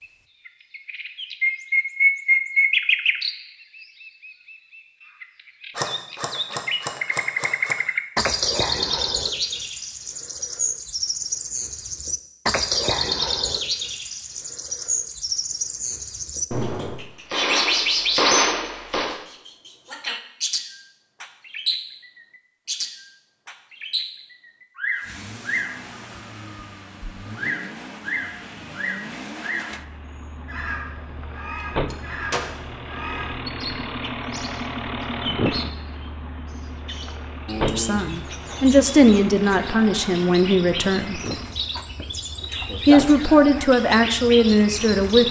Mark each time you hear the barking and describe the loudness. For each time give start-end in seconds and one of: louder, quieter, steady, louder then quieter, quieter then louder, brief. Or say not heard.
not heard.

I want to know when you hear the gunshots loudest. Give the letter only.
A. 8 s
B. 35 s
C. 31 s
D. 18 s
D.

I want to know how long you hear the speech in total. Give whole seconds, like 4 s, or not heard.
6 s.